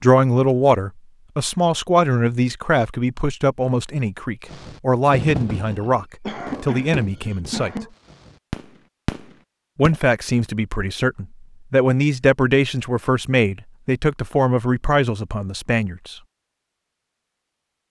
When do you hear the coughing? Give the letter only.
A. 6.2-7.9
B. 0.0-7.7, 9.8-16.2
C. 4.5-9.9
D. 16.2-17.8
A.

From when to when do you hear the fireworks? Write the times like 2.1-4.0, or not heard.
4.5-9.9.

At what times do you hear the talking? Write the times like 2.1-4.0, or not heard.
0.0-7.7, 9.8-16.2.